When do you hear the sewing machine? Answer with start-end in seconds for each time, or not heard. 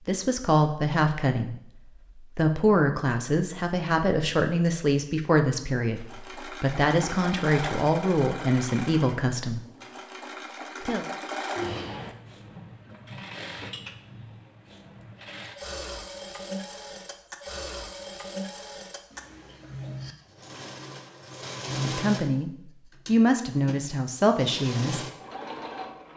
6.0-26.1.